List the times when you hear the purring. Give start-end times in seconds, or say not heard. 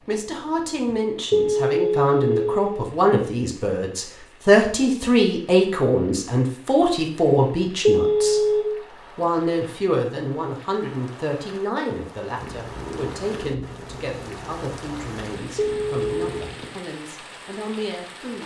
12.4-16.7.